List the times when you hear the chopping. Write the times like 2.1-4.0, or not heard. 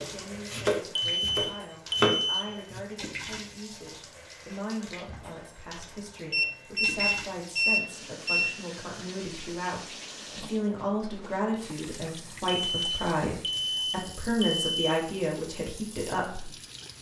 0.0-2.8.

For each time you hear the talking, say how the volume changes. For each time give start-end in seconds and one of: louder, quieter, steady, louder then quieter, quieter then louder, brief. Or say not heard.
0.0-16.5 louder.